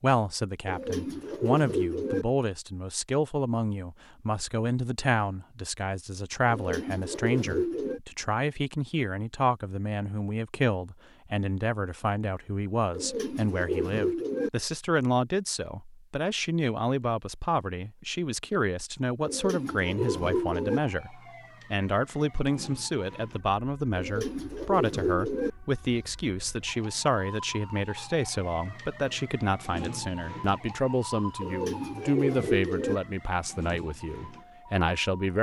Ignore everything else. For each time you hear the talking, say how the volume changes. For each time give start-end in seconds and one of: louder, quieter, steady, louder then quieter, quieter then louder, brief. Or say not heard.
0.0-35.3 steady.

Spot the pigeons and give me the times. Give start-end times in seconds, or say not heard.
0.7-2.2, 6.5-8.0, 12.9-14.5, 19.2-20.8, 23.9-25.5, 31.4-33.0.